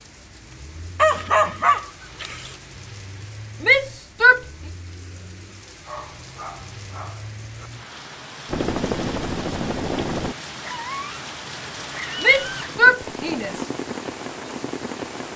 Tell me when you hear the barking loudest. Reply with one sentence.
The volume of the barking peaks at 1 second.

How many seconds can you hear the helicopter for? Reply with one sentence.
The helicopter can be heard for 2 seconds in total.